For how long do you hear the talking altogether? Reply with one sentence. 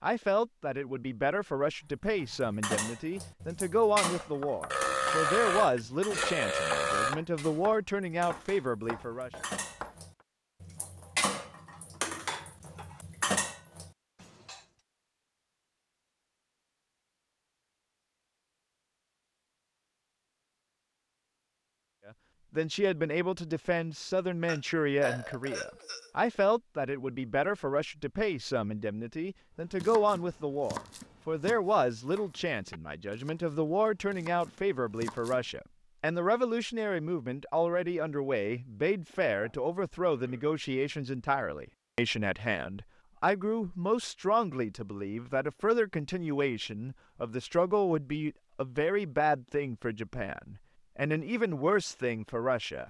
You can hear the talking for 40 seconds altogether.